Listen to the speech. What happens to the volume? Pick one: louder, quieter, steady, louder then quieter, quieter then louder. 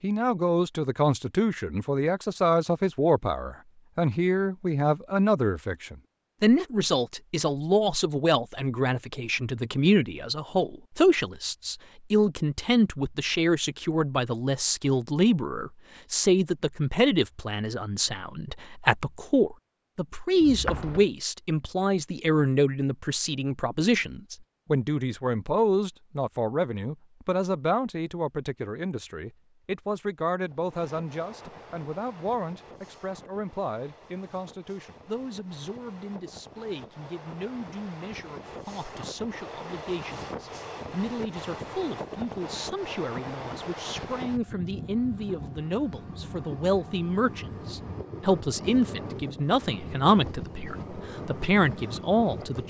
quieter then louder.